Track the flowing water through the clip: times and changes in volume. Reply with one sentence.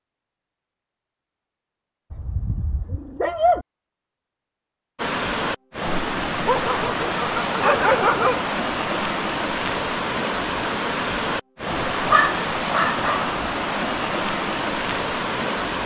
You can hear the flowing water from 5.0 to 15.8 s, at a steady volume.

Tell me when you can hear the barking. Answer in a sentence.
The barking can be heard from 2.1 to 3.6 s, from 6.5 to 8.4 s and from 12.1 to 13.3 s.